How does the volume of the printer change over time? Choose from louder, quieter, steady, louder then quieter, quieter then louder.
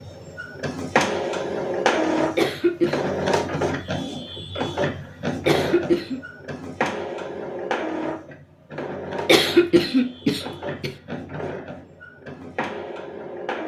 quieter.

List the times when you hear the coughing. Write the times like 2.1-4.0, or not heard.
2.4-3.0, 5.5-6.2, 9.2-10.9.